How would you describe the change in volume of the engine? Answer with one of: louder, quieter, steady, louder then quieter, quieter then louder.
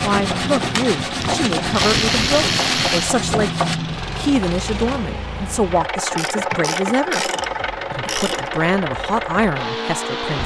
steady.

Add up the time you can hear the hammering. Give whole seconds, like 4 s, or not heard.
not heard.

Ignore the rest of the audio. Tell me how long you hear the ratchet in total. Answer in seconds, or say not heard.
5 s.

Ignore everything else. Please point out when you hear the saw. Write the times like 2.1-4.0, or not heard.
0.0-3.8.